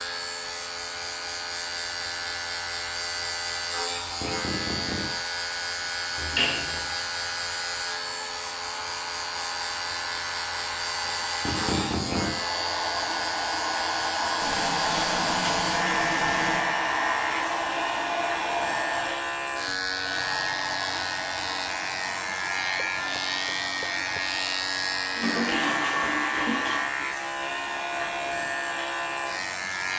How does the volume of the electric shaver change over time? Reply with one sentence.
The loudness of the electric shaver stays about the same.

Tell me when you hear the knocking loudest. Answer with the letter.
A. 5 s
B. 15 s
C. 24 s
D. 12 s
D.